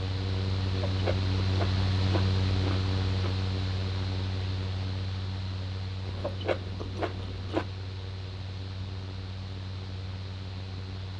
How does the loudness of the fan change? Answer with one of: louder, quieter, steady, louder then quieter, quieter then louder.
quieter.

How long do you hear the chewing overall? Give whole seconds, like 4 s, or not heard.
4 s.